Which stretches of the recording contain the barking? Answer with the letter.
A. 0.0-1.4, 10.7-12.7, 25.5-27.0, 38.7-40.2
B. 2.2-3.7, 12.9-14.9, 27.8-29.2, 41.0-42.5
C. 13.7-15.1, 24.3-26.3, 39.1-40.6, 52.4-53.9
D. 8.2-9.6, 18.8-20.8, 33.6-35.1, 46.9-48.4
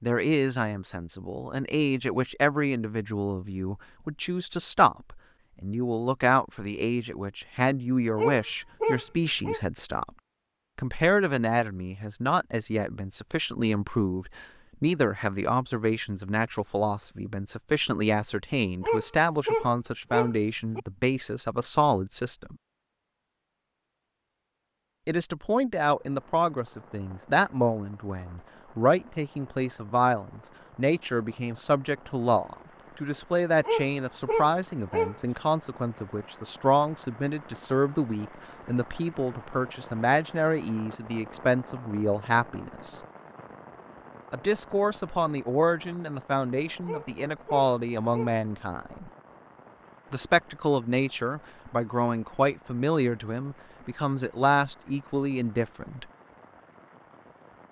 D.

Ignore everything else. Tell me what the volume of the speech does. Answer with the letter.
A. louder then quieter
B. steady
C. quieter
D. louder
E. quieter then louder
B.